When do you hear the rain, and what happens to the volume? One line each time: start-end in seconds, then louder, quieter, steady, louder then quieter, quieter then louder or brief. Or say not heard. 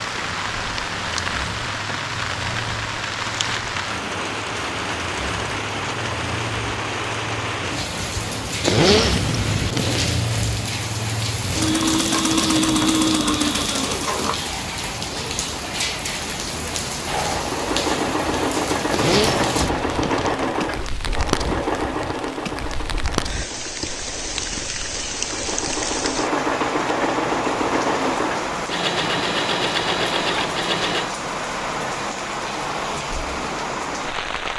0.0-34.5 steady.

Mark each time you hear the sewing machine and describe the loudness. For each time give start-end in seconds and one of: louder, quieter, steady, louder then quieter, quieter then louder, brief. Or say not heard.
0.1-14.4 louder
17.1-31.1 quieter then louder.